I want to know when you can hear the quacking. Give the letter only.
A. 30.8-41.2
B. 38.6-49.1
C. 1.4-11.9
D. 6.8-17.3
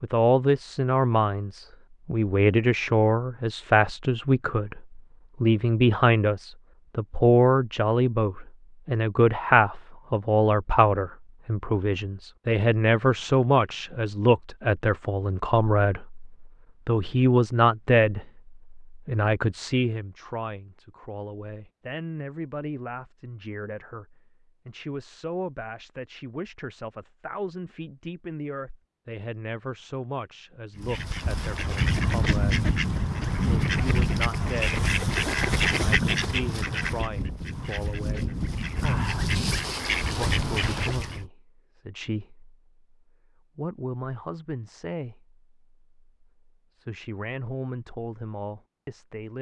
A.